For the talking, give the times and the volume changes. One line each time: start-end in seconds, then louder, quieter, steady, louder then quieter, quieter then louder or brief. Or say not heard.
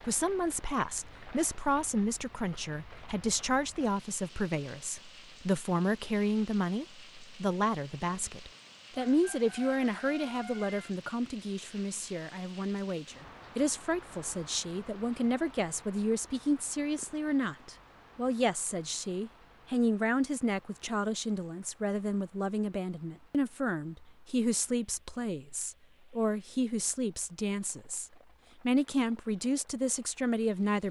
0.0-30.8 steady.